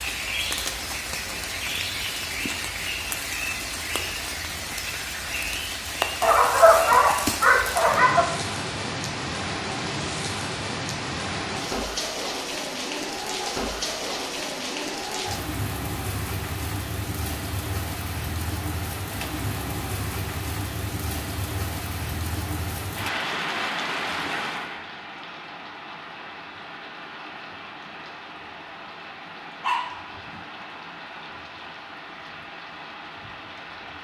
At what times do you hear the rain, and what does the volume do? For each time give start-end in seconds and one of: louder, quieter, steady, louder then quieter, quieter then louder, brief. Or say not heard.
0.0-33.9 quieter.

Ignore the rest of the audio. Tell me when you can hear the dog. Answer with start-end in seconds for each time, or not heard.
6.2-8.2, 29.6-30.4.